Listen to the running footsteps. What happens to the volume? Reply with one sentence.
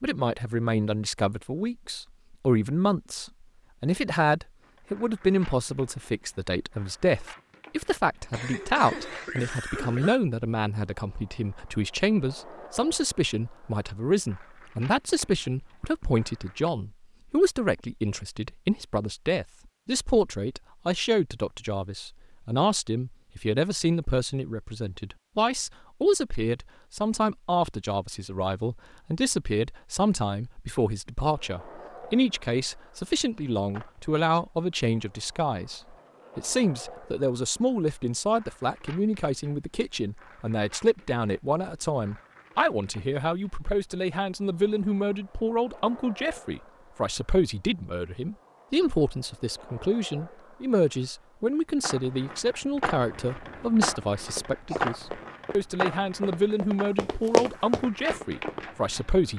The volume of the running footsteps goes up.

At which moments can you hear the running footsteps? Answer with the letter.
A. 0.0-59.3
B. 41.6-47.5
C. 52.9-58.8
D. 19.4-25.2
C.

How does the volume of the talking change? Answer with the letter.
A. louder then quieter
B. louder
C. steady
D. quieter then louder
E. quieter
C.